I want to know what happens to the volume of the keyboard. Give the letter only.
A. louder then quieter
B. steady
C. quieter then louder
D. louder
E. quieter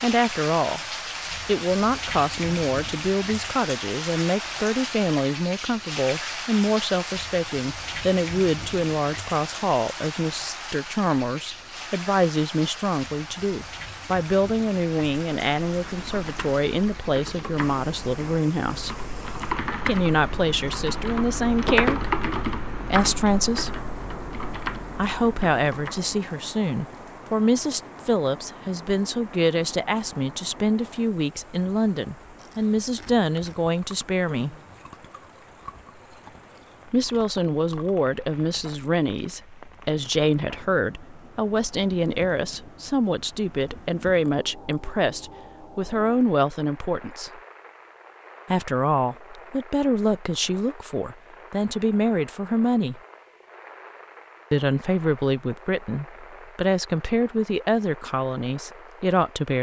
A.